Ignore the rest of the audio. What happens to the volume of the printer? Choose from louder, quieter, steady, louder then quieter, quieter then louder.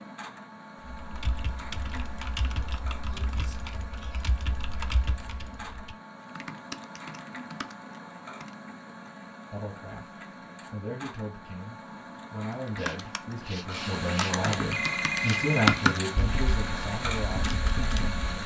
louder.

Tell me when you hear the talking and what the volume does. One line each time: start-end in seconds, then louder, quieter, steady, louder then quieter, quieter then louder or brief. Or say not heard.
9.5-18.4 louder then quieter.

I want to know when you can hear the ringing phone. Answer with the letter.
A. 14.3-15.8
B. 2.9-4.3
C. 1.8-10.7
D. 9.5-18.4
A.